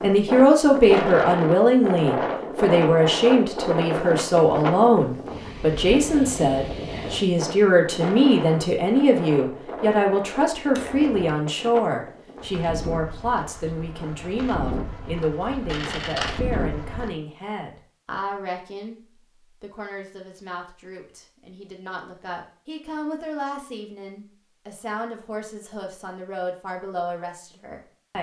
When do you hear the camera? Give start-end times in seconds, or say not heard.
10.7-11.2, 15.7-16.4.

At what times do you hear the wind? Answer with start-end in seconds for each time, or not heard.
0.0-17.1.